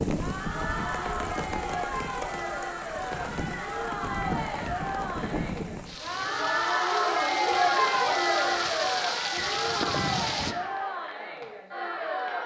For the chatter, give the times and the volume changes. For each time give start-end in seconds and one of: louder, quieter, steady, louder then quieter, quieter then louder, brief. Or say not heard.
0.1-12.4 louder then quieter.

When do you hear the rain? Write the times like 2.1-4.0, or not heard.
0.0-10.6.